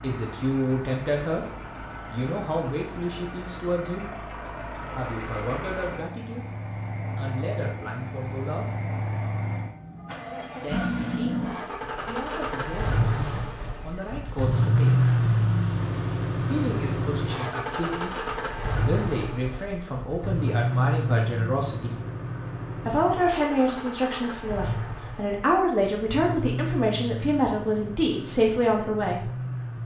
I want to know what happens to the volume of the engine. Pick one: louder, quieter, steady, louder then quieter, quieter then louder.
louder then quieter.